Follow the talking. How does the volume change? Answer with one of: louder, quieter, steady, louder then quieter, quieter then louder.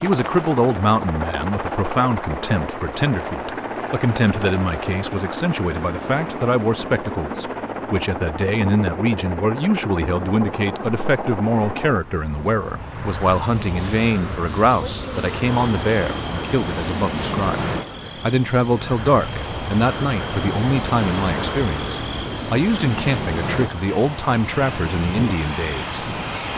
steady.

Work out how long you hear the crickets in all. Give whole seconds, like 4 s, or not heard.
16 s.